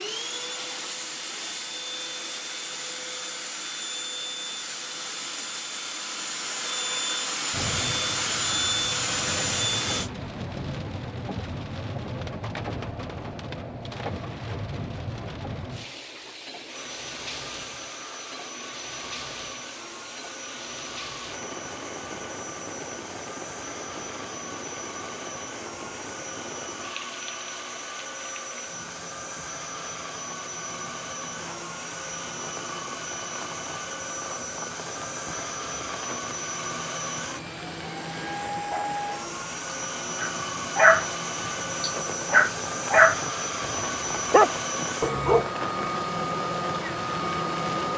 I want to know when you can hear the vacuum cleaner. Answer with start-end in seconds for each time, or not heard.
0.0-10.1, 16.6-47.9.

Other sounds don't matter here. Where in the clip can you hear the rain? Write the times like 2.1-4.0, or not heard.
7.5-47.9.